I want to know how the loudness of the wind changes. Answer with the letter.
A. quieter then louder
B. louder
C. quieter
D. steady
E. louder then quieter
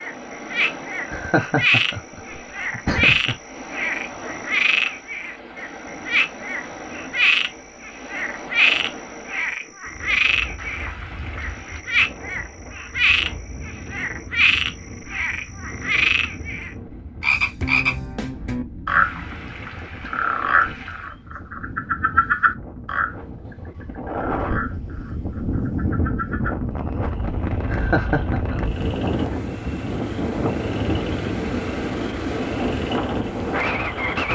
B.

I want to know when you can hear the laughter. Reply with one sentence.
The laughter can be heard from 1.1 to 3.4 s and from 27.6 to 29.4 s.